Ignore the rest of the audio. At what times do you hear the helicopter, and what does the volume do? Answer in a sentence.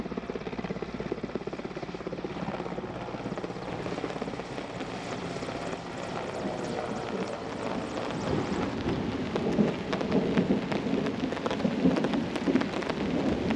The helicopter can be heard from 0.0 to 8.8 s, at a steady volume.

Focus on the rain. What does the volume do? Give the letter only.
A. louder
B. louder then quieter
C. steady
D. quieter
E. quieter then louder
A.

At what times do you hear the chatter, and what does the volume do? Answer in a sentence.
The chatter can't be heard in this clip.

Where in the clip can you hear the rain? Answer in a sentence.
The rain can be heard from 3.6 to 13.5 s.